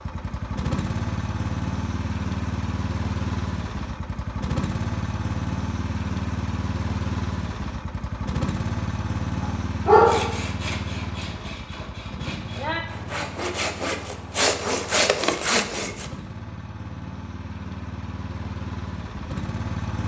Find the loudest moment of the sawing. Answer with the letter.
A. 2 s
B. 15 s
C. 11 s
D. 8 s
B.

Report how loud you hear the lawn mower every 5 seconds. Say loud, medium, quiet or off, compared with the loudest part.
loud, loud, medium, medium.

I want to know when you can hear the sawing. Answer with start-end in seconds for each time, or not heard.
9.9-16.1.